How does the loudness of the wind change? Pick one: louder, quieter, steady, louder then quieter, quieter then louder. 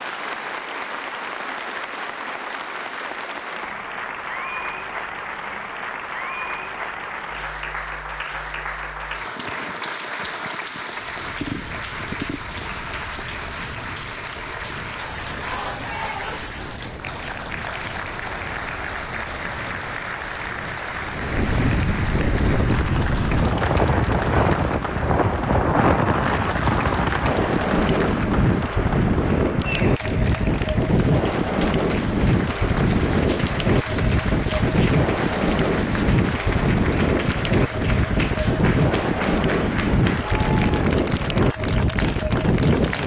louder.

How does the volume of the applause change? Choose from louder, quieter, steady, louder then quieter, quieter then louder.
steady.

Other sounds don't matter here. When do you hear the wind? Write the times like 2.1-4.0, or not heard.
10.9-43.0.